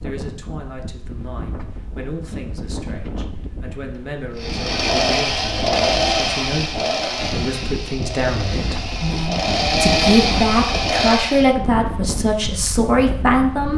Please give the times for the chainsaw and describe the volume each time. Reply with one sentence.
You can hear the chainsaw from 4.3 to 11.6 s, getting quieter then louder.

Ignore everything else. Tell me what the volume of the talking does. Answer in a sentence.
The volume of the talking goes up.